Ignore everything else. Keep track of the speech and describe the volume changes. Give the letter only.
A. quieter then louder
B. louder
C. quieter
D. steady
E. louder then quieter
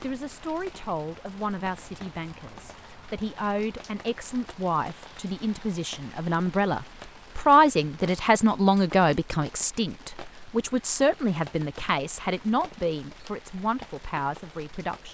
E.